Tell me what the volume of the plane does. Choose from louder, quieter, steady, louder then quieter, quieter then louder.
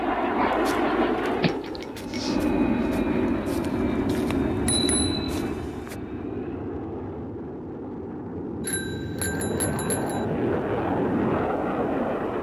quieter then louder.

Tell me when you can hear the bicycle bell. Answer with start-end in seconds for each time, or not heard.
1.4-2.2, 4.5-6.0, 8.7-10.2.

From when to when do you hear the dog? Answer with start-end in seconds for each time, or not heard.
0.3-1.9.